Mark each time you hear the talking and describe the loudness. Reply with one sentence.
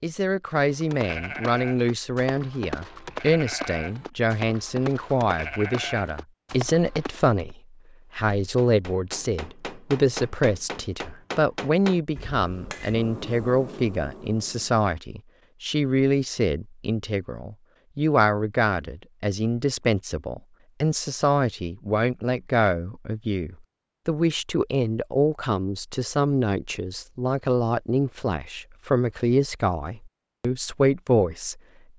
The talking can be heard from 0.0 to 7.5 s, at a steady volume; and from 8.2 to 31.9 s, at a steady volume.